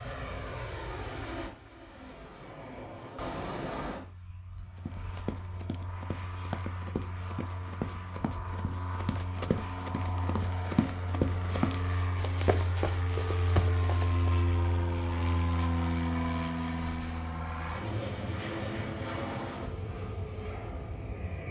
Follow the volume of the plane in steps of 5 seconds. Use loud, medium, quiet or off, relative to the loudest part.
medium, medium, loud, loud, medium.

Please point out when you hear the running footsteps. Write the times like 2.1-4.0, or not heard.
4.8-14.3.